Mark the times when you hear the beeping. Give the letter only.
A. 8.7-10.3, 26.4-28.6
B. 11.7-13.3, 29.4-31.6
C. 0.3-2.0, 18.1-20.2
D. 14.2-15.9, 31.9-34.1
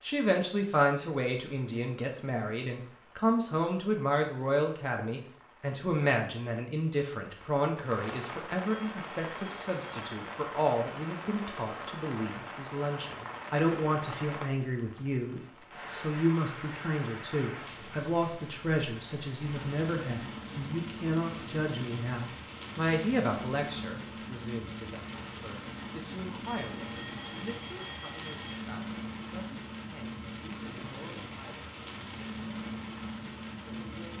A.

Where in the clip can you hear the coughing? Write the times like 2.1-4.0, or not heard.
not heard.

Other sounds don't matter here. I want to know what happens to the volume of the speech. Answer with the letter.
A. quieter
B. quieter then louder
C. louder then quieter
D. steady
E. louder
A.